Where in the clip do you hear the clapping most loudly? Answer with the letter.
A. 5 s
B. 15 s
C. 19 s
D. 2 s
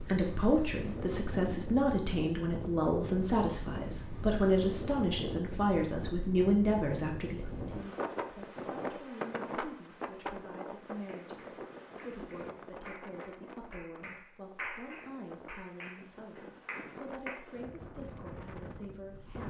B.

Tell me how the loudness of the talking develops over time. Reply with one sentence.
The volume of the talking goes down.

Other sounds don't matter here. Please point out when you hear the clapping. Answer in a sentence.
The clapping can be heard from 11.1 to 17.4 s.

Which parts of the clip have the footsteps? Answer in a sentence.
You can't hear the footsteps here.